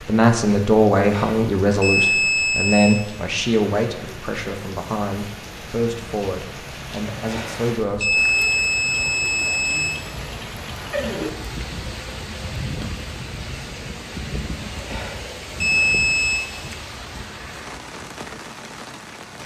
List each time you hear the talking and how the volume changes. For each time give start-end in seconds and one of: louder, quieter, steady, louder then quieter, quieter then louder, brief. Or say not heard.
0.1-8.2 quieter.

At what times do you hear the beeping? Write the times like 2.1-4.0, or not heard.
1.0-3.0, 7.2-9.9, 14.8-16.4.